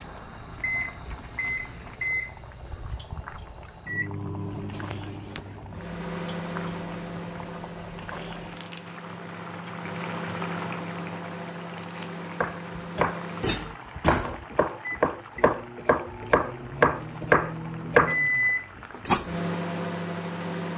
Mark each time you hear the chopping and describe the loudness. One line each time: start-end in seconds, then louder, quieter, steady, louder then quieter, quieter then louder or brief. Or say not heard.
12.4-18.1 louder.